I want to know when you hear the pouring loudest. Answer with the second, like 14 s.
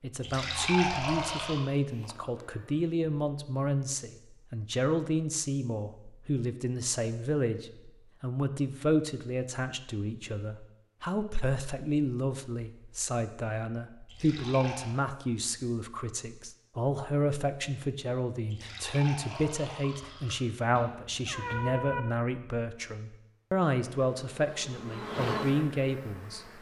1 s.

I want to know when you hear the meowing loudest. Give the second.
22 s.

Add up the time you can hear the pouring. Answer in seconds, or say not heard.
4 s.